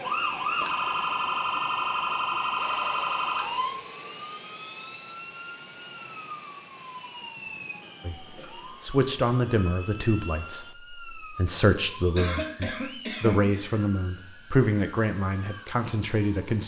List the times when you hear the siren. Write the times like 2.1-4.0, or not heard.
0.0-16.6.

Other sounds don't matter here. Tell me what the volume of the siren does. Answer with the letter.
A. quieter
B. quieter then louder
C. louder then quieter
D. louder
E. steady
A.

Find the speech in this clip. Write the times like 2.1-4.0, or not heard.
8.1-16.6.